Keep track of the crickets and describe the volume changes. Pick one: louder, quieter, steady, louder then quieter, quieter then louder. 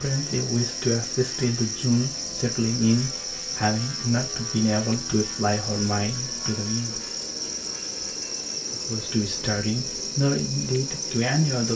steady.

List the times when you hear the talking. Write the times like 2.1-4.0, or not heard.
0.0-7.0, 8.7-11.7.